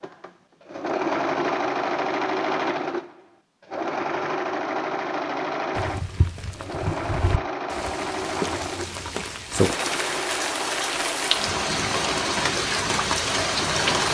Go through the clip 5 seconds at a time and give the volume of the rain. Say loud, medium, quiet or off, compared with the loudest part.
off, medium, loud.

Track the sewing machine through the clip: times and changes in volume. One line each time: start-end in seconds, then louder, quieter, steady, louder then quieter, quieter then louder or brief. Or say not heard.
0.0-14.0 quieter.